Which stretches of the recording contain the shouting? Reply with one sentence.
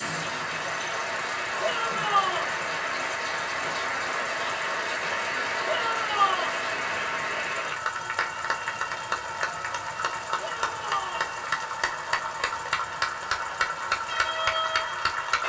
You can hear the shouting from 1.6 to 2.5 s, from 5.7 to 6.5 s and from 10.3 to 11.3 s.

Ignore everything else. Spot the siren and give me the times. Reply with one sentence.
You can't hear the siren here.